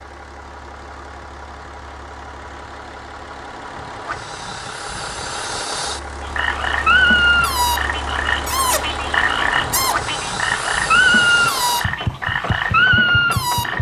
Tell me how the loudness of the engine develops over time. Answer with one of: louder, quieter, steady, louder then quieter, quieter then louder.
louder.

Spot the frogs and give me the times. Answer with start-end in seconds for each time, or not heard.
6.2-13.7.